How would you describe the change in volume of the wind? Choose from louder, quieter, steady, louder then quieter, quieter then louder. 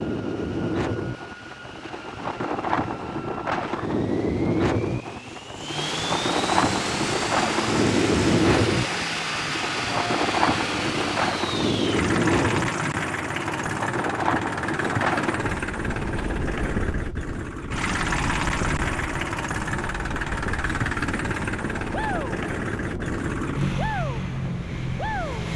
quieter.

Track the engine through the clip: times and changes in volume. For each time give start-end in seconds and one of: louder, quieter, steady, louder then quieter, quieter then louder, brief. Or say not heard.
0.0-25.5 louder.